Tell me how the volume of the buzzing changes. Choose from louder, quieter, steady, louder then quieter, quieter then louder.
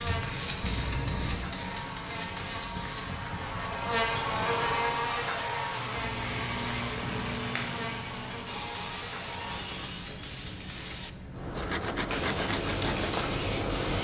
louder then quieter.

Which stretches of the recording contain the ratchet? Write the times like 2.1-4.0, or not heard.
not heard.